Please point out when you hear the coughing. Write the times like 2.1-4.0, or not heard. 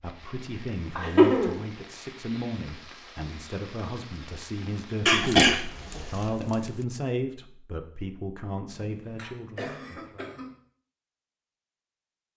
0.9-1.6, 5.0-6.5, 8.7-10.6.